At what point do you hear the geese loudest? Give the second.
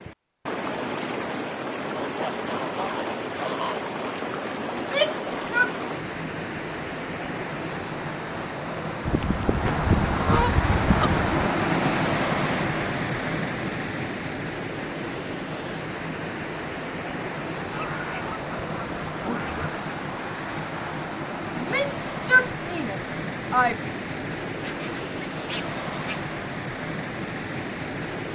10 s.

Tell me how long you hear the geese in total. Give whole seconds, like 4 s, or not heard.
8 s.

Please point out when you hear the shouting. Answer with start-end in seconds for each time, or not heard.
4.8-5.8, 21.6-23.8.